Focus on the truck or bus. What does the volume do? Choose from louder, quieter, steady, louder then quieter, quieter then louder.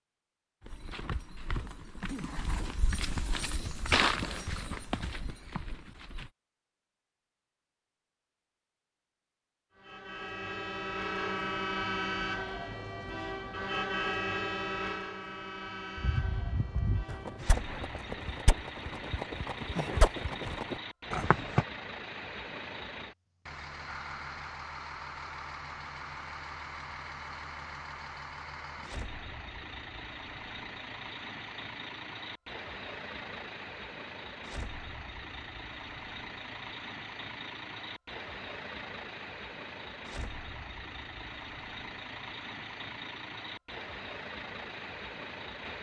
quieter.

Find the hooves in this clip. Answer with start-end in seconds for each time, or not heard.
0.6-6.3, 15.9-21.6.